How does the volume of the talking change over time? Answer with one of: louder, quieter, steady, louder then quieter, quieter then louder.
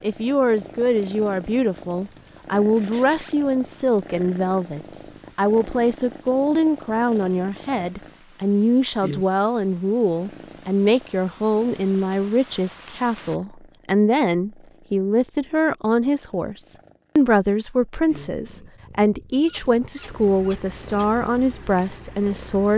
steady.